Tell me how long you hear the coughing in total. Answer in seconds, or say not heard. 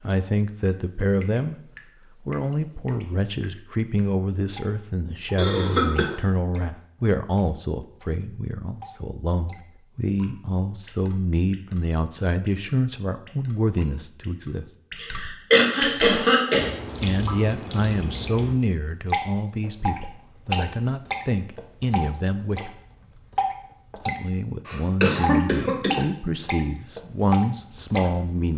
4 s.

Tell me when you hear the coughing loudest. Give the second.
16 s.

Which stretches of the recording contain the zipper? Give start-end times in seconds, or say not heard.
not heard.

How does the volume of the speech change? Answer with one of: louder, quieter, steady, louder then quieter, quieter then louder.
steady.